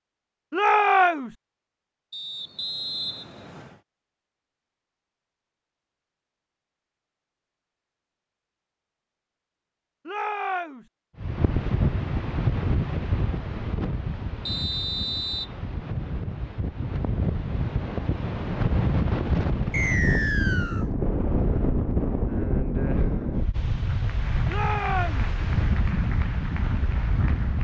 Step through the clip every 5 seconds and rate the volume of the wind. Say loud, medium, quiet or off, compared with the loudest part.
off, off, loud, loud, loud, loud.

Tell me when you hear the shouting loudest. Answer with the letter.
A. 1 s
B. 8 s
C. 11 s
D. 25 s
A.